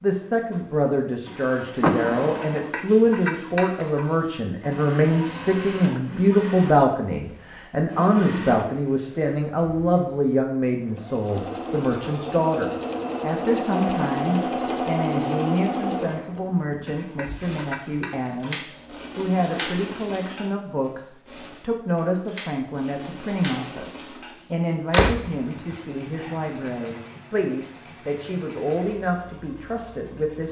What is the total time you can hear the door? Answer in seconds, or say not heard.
2 s.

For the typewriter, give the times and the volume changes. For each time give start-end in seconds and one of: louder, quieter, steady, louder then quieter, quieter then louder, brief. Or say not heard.
not heard.